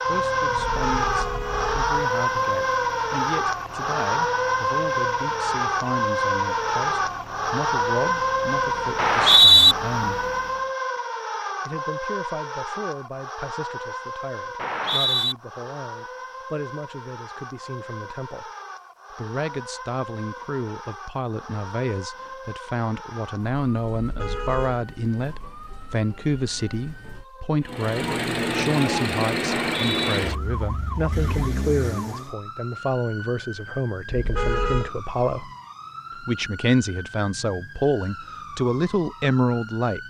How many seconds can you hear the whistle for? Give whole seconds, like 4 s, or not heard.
2 s.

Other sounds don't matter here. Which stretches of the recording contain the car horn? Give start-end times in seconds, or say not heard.
0.6-1.9, 23.9-24.8, 34.1-34.9.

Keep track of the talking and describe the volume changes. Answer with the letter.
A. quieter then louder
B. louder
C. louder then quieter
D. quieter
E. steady
B.